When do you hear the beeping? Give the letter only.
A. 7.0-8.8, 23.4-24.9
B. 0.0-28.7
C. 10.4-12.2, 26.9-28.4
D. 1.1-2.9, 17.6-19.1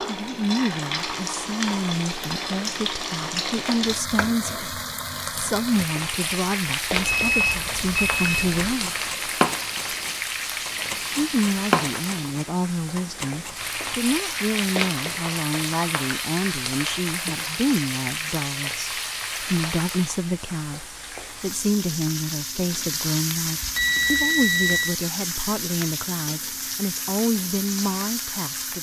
A.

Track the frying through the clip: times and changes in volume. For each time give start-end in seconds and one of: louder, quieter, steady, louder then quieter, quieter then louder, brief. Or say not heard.
0.0-28.7 steady.